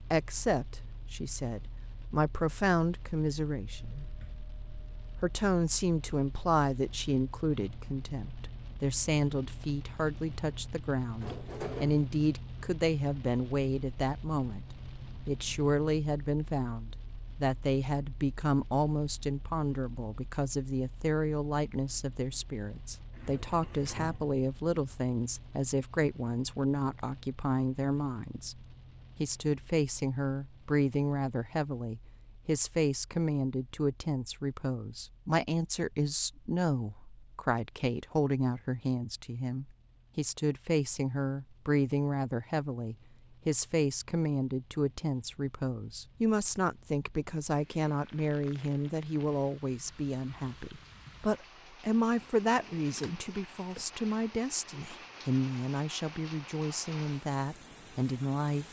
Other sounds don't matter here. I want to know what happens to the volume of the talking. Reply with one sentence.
The loudness of the talking stays about the same.